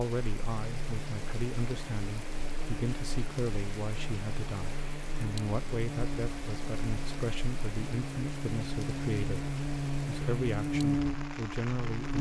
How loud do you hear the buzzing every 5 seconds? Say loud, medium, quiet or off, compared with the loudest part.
quiet, medium, loud.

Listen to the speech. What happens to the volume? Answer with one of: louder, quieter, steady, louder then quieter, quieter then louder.
steady.